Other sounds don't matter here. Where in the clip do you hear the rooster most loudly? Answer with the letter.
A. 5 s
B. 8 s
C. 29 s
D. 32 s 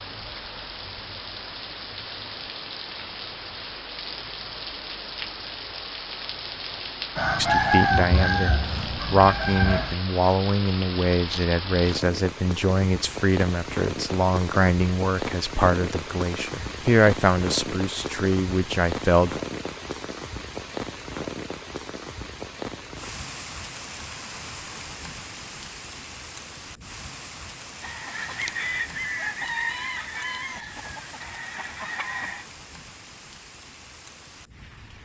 B.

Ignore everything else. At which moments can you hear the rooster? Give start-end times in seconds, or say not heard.
7.2-9.9, 27.8-32.5.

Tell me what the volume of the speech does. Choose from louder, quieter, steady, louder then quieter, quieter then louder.
steady.